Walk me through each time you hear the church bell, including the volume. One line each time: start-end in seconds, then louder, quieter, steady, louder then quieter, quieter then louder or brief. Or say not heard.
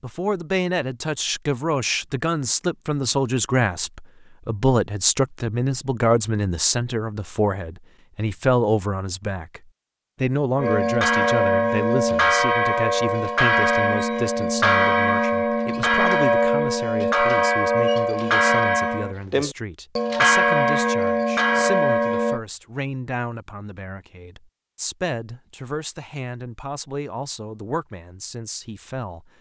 10.6-22.4 steady.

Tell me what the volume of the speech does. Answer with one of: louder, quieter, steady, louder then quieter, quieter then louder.
quieter.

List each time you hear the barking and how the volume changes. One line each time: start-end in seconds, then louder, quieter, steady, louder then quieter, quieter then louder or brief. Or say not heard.
not heard.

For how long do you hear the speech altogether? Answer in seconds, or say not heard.
29 s.